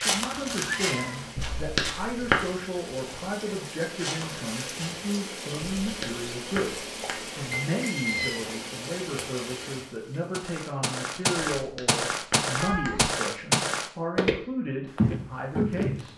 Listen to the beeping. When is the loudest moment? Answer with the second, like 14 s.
2 s.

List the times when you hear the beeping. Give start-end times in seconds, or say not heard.
1.4-2.5, 5.7-7.7, 11.6-13.1.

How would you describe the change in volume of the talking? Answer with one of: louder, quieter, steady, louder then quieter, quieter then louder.
steady.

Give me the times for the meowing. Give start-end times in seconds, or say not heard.
0.2-1.4, 7.8-8.5, 12.6-13.2.